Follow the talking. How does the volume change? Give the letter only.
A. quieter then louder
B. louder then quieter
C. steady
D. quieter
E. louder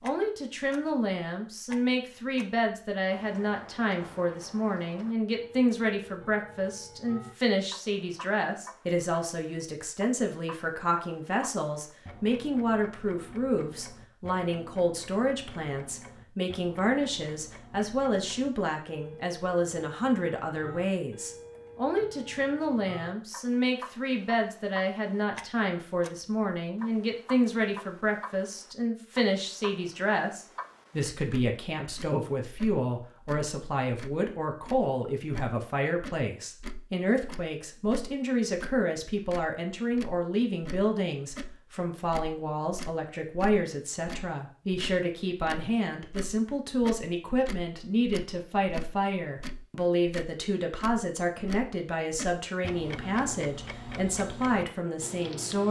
C.